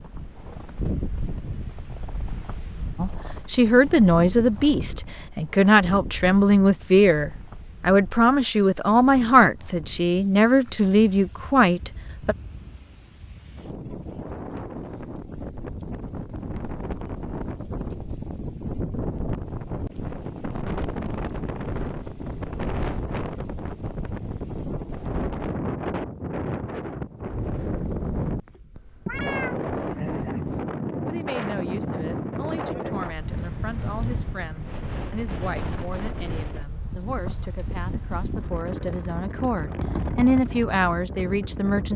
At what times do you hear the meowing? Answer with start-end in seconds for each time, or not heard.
28.8-30.6.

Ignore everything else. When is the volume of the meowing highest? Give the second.
29 s.